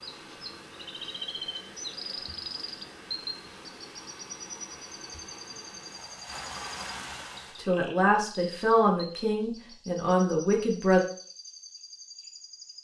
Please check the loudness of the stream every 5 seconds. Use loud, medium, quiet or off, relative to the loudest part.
medium, loud, off.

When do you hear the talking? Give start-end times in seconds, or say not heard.
7.5-11.0.